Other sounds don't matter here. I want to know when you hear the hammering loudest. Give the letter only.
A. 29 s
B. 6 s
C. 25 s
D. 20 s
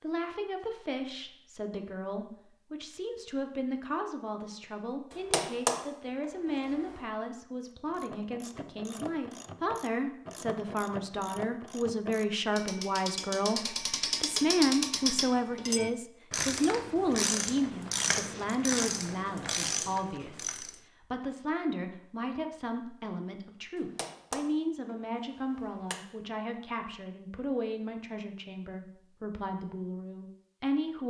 B.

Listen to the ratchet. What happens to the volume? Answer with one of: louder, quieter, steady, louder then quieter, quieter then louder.
louder.